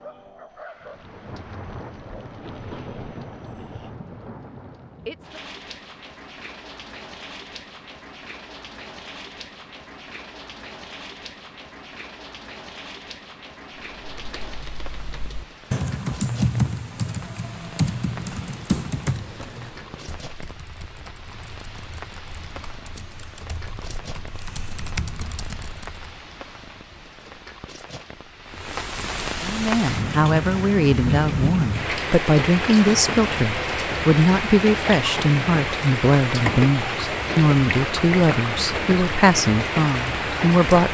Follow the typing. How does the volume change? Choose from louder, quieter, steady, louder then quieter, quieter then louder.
quieter then louder.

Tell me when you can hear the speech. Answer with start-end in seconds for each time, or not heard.
29.4-40.9.